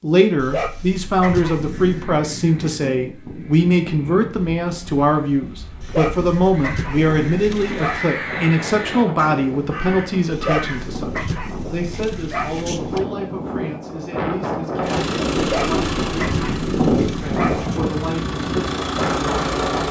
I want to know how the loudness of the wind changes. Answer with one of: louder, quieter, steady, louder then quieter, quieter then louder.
louder.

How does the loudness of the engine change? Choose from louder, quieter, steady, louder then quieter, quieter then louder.
quieter then louder.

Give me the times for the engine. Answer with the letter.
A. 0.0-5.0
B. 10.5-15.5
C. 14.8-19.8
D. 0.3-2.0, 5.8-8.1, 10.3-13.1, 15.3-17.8
C.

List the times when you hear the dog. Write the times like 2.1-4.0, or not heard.
0.3-2.0, 5.8-8.1, 10.3-13.1, 15.3-17.8.